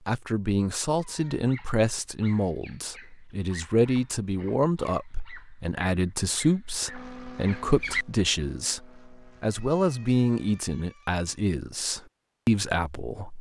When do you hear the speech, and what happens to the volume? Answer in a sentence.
The speech can be heard from 0.1 to 13.3 s, at a steady volume.